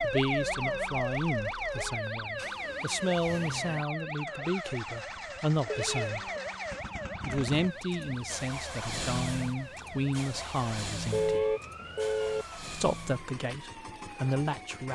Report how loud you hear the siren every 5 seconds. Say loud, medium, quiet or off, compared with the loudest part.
loud, medium, quiet.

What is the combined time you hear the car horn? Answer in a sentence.
You can hear the car horn for 3 seconds altogether.